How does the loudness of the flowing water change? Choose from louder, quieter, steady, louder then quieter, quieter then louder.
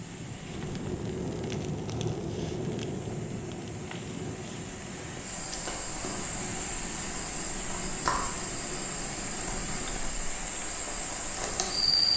louder.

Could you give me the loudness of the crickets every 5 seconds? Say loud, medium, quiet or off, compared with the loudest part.
off, medium, loud.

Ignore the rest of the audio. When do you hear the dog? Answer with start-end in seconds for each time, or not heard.
not heard.